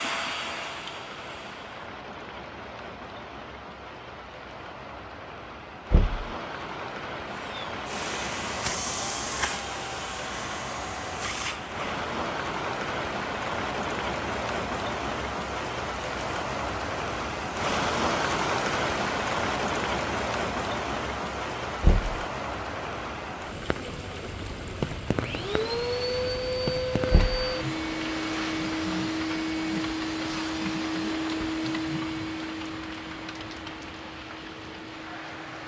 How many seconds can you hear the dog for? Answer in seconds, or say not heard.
not heard.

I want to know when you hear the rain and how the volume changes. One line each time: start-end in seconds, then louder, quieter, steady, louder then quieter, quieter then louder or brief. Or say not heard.
0.0-35.6 louder then quieter.